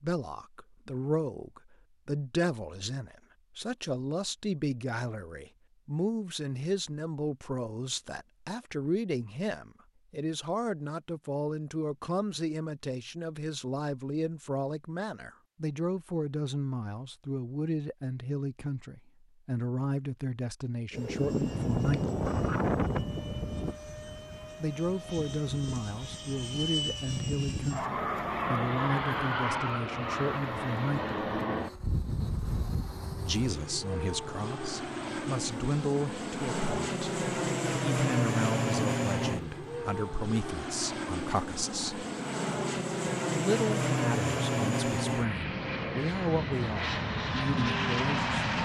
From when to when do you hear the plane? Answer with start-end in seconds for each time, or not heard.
20.9-48.6.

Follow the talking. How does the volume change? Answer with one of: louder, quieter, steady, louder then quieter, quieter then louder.
steady.